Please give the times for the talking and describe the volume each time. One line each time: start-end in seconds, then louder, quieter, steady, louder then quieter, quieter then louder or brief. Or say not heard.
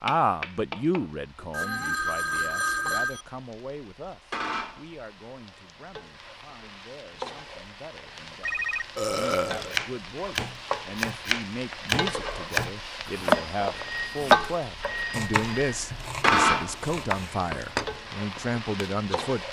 0.0-19.4 quieter then louder.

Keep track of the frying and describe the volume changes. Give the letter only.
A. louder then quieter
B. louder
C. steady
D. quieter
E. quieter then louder
B.